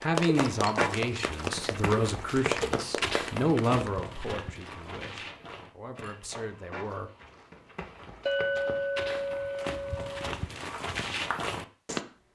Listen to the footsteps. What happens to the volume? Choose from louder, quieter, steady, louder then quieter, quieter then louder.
quieter then louder.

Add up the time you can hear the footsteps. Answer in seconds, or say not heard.
12 s.